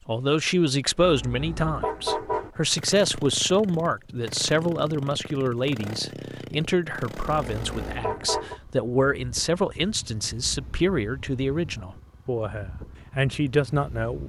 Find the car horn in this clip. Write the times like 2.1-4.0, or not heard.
1.0-2.5, 7.5-8.6.